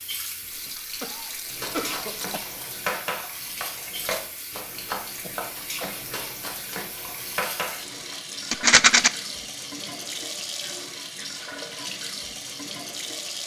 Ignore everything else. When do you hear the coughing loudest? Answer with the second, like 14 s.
2 s.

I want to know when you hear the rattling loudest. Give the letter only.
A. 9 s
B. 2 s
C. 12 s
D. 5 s
A.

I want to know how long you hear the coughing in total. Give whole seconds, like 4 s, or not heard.
4 s.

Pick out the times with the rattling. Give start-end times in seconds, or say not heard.
0.5-2.5, 8.5-9.1.